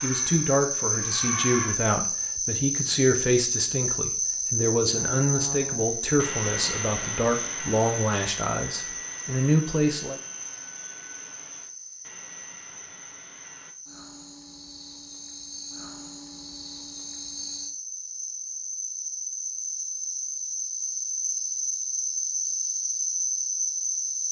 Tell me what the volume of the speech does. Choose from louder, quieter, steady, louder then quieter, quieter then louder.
steady.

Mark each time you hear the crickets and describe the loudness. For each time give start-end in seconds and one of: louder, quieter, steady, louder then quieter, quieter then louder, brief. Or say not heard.
0.0-24.2 quieter then louder.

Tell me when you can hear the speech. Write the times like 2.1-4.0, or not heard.
0.0-10.2.